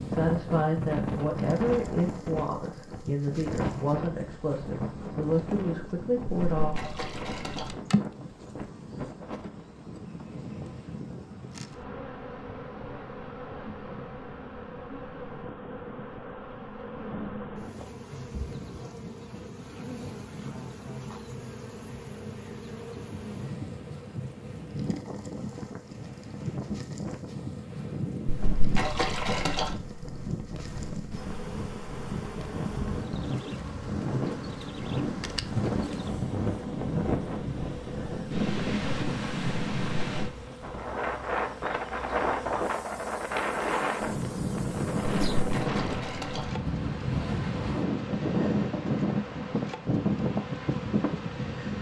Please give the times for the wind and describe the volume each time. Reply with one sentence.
You can hear the wind from 0.0 to 51.7 s, getting quieter then louder.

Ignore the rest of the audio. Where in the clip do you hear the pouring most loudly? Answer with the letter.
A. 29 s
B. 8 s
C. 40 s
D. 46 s
A.